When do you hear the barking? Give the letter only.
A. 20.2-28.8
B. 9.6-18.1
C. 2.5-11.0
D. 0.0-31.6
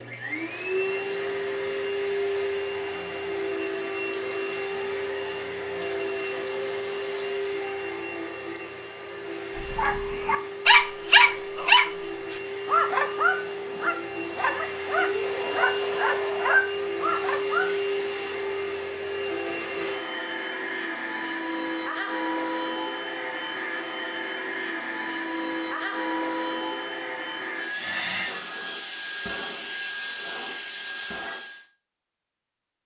B.